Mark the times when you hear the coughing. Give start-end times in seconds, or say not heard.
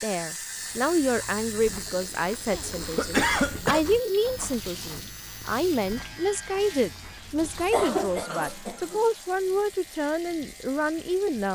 2.5-3.8, 7.6-9.1.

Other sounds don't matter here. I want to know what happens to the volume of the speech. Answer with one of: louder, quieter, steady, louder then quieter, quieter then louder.
steady.